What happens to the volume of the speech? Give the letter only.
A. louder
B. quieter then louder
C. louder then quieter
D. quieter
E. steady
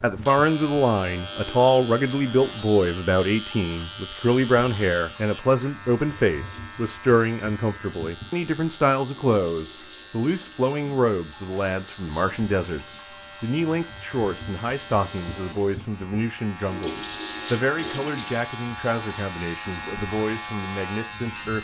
D.